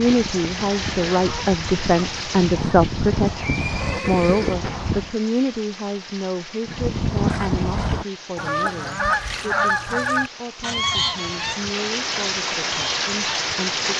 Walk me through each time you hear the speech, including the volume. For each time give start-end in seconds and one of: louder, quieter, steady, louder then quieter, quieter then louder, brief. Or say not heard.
0.0-13.8 quieter.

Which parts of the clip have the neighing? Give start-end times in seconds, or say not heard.
3.4-4.6, 7.2-8.1.